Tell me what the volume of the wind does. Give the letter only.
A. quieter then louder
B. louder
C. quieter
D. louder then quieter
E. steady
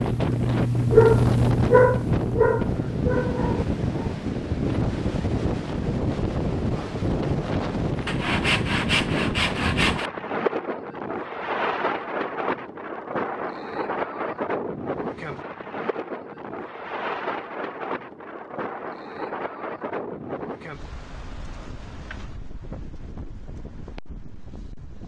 C.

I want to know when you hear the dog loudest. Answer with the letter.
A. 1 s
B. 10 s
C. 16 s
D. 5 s
A.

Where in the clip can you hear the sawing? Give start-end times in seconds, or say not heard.
8.1-10.1.